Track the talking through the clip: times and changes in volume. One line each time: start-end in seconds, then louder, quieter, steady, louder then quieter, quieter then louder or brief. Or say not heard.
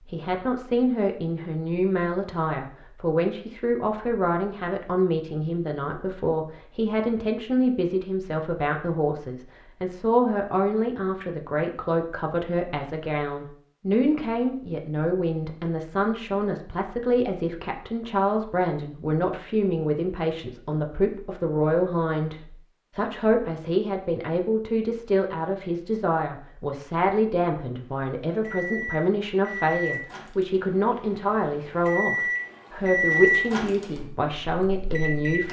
0.0-35.4 steady.